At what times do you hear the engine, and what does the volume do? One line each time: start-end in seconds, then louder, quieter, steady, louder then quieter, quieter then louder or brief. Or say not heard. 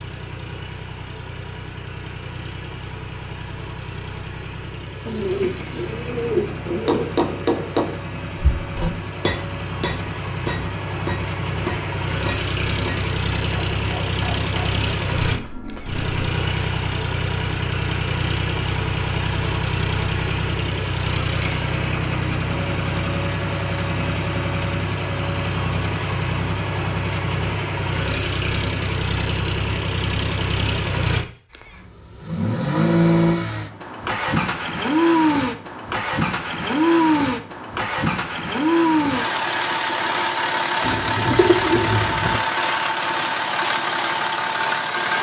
0.0-45.1 louder.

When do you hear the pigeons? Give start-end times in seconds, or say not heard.
5.0-7.0, 40.8-42.4.